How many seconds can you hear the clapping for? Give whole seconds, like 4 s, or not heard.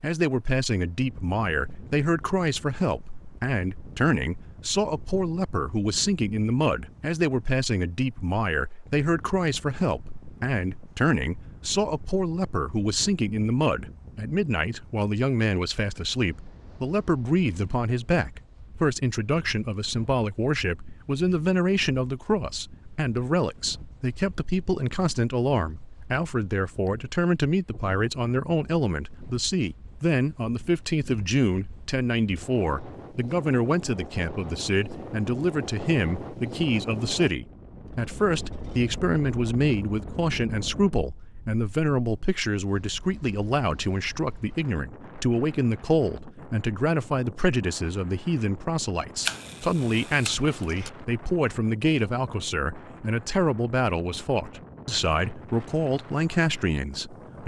not heard.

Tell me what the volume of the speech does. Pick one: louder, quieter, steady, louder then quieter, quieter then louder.
steady.